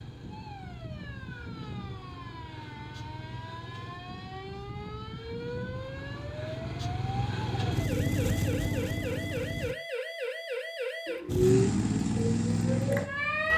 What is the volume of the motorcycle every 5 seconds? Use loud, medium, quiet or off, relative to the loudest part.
quiet, medium, loud.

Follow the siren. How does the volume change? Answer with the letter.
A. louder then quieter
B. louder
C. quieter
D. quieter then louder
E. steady
B.